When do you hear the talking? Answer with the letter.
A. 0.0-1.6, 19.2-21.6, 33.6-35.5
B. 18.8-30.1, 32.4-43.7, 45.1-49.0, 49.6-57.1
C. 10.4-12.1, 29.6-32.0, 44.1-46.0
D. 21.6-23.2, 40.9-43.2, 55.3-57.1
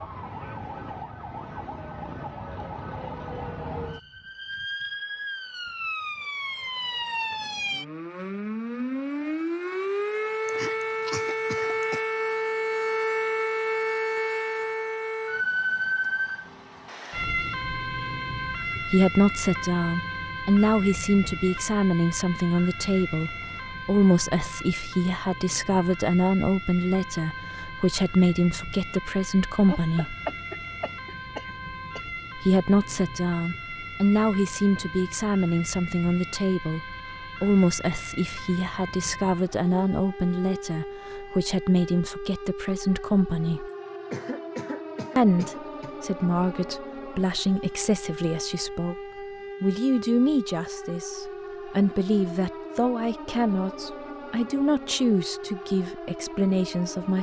B.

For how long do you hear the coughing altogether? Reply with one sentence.
You can hear the coughing for 6 seconds altogether.